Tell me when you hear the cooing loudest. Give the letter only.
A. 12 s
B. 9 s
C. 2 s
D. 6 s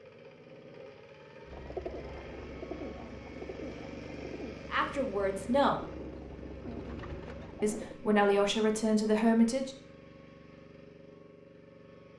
C.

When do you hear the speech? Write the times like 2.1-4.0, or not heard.
4.7-5.8, 7.6-9.8.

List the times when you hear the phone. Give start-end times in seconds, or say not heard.
not heard.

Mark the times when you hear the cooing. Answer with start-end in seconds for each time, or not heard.
1.4-8.0.